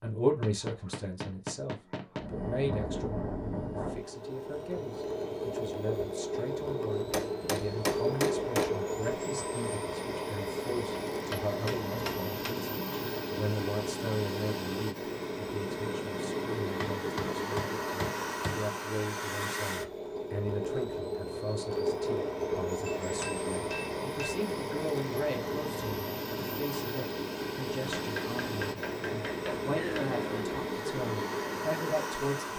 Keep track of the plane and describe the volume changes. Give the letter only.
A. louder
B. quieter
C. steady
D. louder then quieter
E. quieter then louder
C.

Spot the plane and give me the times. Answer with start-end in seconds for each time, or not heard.
2.1-32.5.